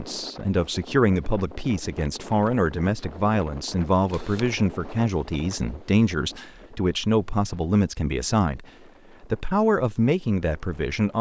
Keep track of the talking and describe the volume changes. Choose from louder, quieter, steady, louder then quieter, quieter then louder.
steady.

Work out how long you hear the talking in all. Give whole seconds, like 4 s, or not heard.
11 s.